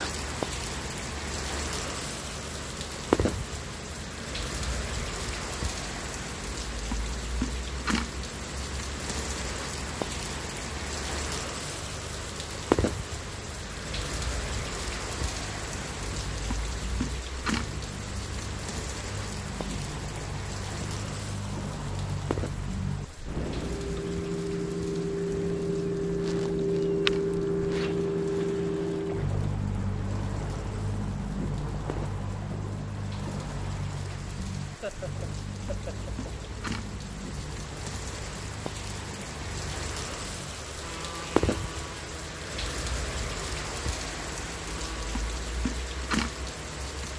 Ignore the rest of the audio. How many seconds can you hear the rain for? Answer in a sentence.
You can hear the rain for 47 seconds altogether.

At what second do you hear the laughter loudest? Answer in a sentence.
The loudest moment of the laughter is at 35 seconds.